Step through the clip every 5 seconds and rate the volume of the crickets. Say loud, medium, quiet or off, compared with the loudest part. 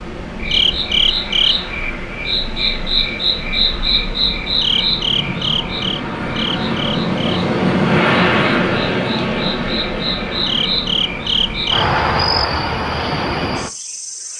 loud, medium, loud.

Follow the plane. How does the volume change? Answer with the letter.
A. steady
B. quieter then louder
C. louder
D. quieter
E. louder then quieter
E.